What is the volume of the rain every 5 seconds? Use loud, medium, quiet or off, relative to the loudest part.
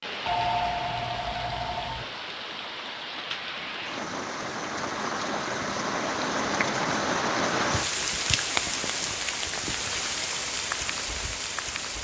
medium, loud, loud.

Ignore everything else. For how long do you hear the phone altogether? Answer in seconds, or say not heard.
2 s.